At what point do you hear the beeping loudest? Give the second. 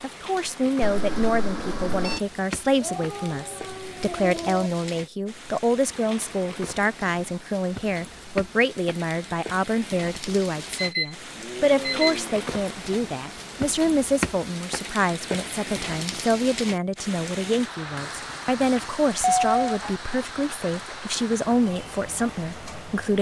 19 s.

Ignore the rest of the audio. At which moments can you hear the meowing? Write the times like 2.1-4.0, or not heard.
2.8-4.7.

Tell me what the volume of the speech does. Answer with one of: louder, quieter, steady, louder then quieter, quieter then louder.
steady.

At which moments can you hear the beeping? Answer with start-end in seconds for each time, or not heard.
0.8-2.2, 10.8-12.3, 18.8-19.6.